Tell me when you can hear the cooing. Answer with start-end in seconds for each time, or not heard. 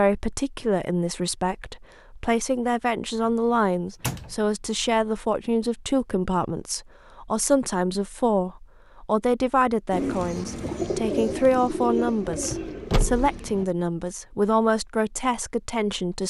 9.9-13.7.